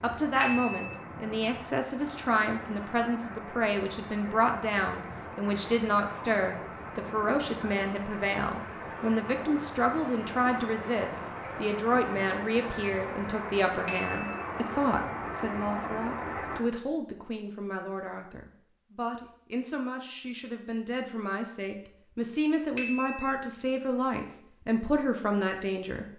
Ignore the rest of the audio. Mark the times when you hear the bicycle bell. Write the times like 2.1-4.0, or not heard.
0.4-0.9, 13.8-14.4, 22.8-23.3.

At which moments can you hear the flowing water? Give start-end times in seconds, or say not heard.
0.0-16.6.